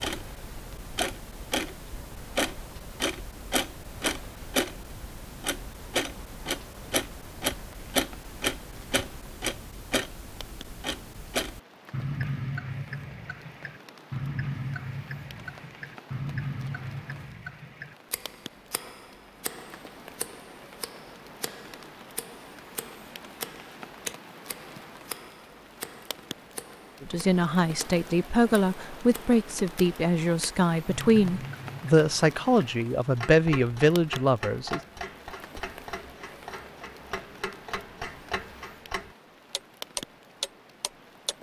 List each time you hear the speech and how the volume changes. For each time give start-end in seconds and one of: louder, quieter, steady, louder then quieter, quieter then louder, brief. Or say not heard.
27.0-34.8 steady.